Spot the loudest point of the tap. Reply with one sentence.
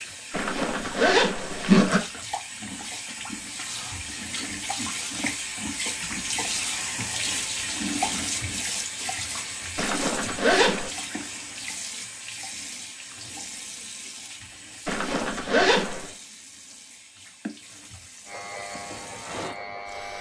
The volume of the tap peaks at 8 seconds.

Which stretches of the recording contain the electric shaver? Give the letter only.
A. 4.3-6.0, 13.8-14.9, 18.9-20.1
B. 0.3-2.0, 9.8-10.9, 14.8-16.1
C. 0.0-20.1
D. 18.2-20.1
D.